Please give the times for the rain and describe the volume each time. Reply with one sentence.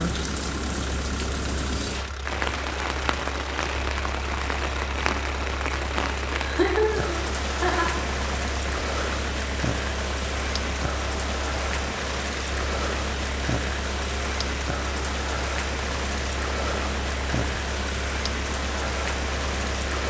The rain can be heard from 0.0 to 20.0 s, at a steady volume.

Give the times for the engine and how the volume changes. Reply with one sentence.
The engine can be heard from 0.0 to 20.0 s, at a steady volume.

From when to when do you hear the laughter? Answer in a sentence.
The laughter can be heard from 6.4 to 8.0 s.